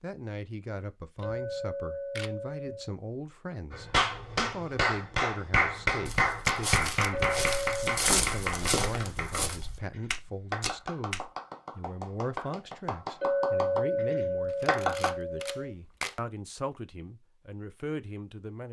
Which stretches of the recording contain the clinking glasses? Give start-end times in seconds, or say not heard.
1.2-3.0, 7.1-8.0, 13.2-15.7.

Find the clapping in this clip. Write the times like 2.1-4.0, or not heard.
3.7-15.2.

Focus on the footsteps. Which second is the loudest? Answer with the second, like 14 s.
8 s.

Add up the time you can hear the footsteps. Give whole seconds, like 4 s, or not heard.
5 s.